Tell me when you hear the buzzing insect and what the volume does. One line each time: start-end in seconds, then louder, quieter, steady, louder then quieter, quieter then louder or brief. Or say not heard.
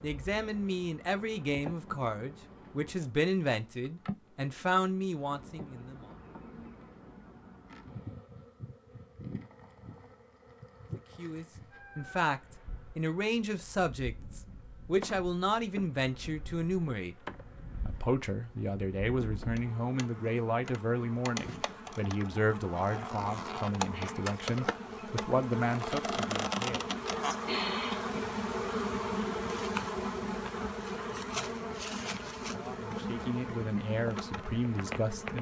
0.0-35.3 louder.